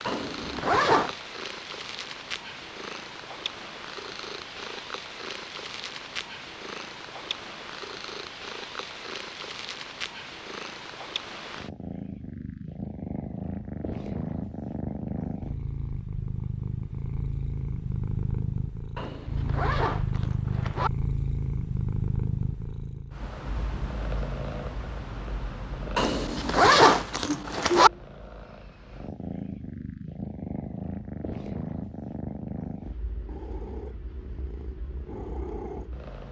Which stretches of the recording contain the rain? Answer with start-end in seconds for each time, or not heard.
not heard.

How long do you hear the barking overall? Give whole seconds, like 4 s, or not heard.
not heard.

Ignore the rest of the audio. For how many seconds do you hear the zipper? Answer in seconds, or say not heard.
5 s.